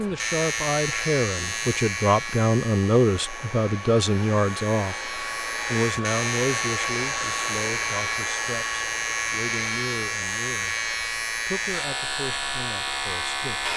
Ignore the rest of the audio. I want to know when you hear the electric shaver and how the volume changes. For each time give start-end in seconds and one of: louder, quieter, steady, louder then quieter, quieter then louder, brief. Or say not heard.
0.0-13.7 quieter then louder.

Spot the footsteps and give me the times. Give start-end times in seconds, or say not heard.
not heard.